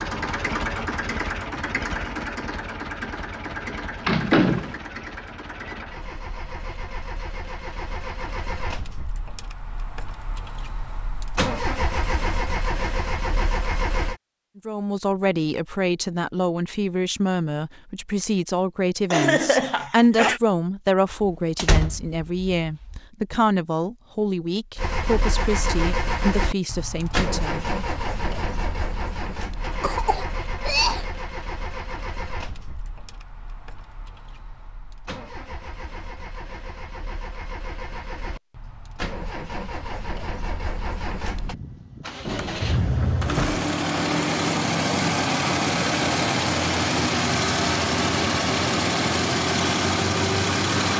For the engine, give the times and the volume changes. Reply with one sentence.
You can hear the engine from 0.0 to 14.2 s, getting quieter then louder; and from 24.8 to 50.9 s, getting quieter then louder.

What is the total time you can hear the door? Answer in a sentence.
You can hear the door for 4 seconds altogether.